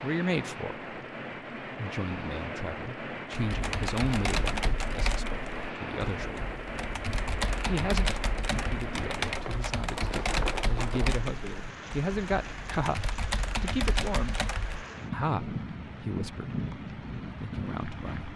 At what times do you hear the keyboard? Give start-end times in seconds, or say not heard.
3.3-14.8.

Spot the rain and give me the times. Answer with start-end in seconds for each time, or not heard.
0.0-18.3.